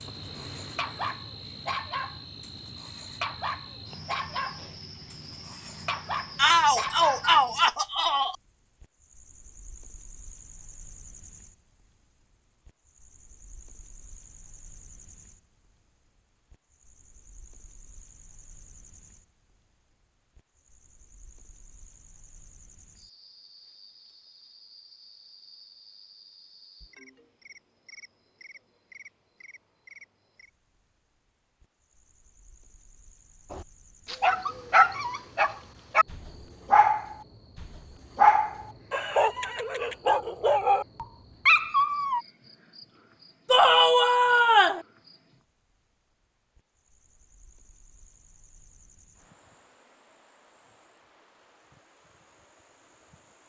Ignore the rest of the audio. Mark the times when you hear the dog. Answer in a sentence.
You can hear the dog from 0.0 to 7.3 s and from 33.5 to 42.2 s.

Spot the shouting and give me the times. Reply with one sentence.
The shouting can be heard from 6.3 to 8.3 s and from 43.5 to 44.9 s.